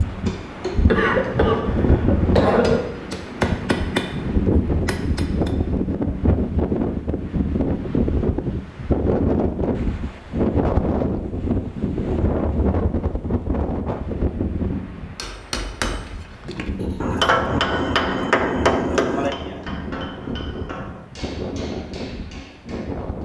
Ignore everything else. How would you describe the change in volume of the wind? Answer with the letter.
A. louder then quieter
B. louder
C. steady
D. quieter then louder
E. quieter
E.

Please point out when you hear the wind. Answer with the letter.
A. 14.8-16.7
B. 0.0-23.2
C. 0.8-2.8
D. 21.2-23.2
B.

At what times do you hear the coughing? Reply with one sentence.
The coughing can be heard from 0.8 to 2.8 s.